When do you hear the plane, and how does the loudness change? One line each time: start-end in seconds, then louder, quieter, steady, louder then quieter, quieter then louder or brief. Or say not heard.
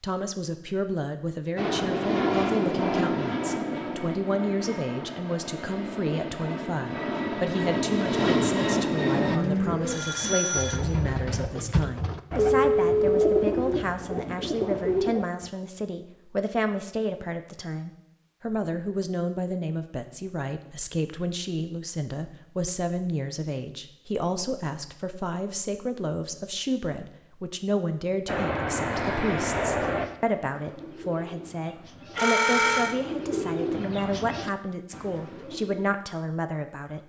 1.6-9.4 quieter then louder
28.2-30.1 brief.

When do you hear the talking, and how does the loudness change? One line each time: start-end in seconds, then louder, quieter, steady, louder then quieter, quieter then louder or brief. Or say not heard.
0.0-37.0 steady.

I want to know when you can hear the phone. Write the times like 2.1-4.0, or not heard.
9.8-10.8, 12.5-13.5, 32.1-33.0.